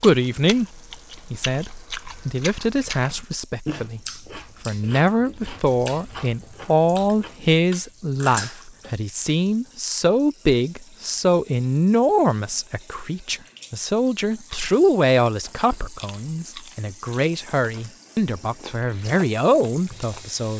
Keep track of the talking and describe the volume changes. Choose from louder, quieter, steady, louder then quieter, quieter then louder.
steady.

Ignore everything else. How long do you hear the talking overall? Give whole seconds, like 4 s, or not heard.
20 s.